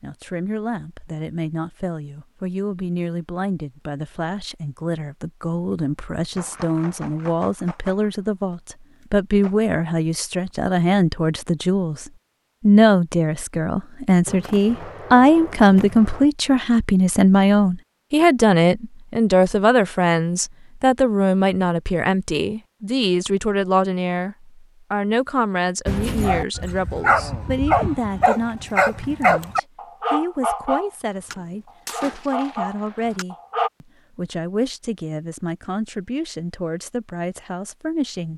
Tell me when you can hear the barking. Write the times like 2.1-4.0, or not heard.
25.9-33.7.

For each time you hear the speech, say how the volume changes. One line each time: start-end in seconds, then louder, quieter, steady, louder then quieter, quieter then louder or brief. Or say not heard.
0.0-38.3 louder then quieter.